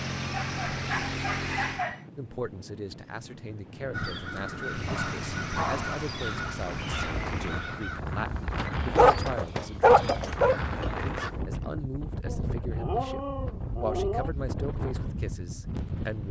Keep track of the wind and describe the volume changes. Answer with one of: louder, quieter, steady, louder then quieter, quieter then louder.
louder.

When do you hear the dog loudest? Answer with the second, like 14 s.
10 s.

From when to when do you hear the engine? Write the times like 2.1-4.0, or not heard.
0.0-1.9, 4.6-7.5.